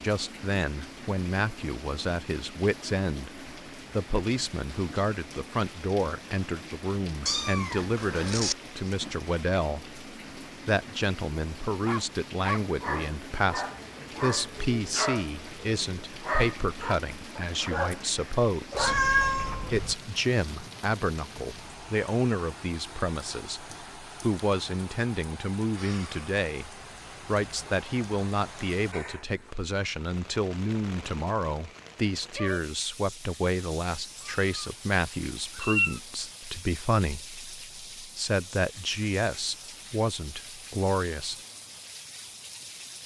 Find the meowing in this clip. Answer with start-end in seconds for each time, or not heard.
7.2-8.6, 18.7-19.9, 34.1-36.0.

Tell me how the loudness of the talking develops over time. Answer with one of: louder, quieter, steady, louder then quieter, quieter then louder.
steady.